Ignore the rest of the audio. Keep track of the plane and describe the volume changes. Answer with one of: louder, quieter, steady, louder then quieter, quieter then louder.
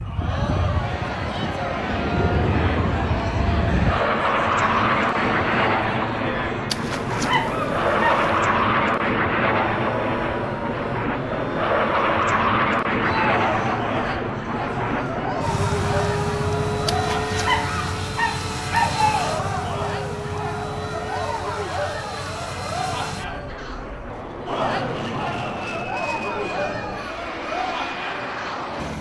quieter.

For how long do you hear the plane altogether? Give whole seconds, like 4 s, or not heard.
29 s.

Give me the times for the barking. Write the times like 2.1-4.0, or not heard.
6.7-8.4, 16.9-19.3.